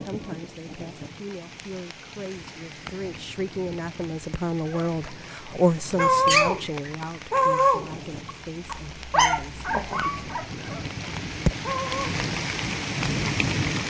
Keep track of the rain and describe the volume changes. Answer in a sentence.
The loudness of the rain goes up.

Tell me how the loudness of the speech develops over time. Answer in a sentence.
The loudness of the speech goes up, then down.